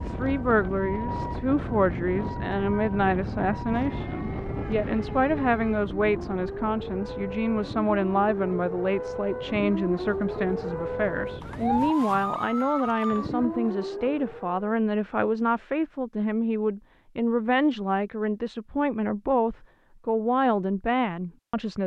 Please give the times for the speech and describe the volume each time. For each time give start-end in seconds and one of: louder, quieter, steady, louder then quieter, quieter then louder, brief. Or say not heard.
0.0-21.8 steady.